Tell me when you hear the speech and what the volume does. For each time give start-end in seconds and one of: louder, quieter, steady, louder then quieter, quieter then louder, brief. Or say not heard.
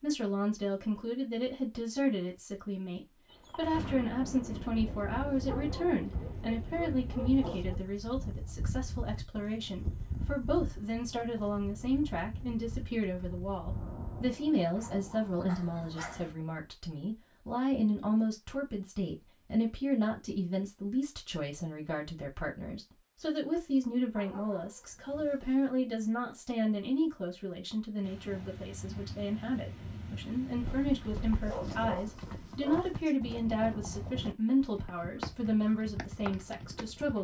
0.0-37.1 steady.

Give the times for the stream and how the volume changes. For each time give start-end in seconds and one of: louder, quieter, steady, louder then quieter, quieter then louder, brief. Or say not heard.
not heard.